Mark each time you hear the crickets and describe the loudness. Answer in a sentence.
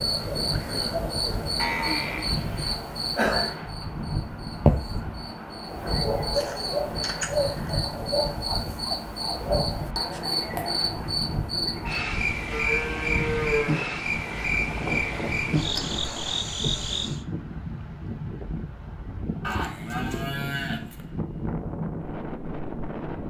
The crickets can be heard from 0.0 to 17.2 s, at a steady volume.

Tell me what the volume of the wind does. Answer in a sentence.
The volume of the wind stays about the same.